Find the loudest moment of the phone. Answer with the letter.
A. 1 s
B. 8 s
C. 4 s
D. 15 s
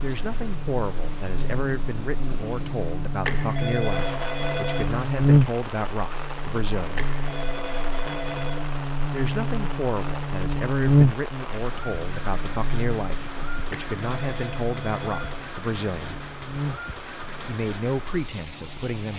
C.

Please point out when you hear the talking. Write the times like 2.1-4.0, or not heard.
0.0-7.1, 9.1-16.2, 17.4-19.1.